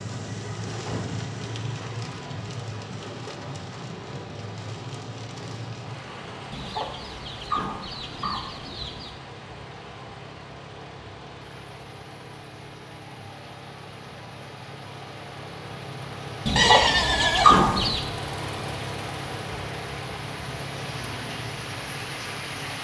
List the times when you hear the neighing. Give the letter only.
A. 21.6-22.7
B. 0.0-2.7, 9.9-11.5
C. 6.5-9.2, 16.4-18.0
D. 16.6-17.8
D.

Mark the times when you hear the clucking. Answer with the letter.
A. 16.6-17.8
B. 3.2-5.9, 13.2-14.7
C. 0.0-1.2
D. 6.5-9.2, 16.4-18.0
D.